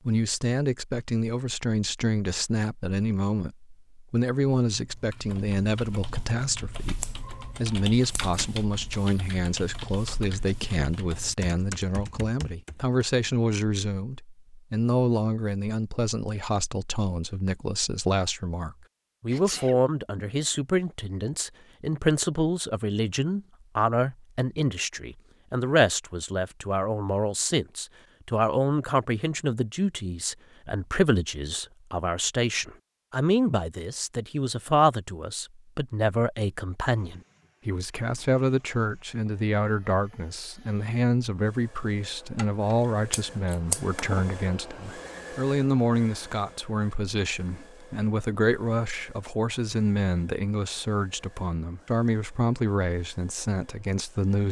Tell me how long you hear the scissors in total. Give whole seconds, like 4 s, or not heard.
3 s.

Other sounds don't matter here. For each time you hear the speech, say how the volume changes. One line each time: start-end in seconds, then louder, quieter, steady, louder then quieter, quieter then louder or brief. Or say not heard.
0.1-54.4 steady.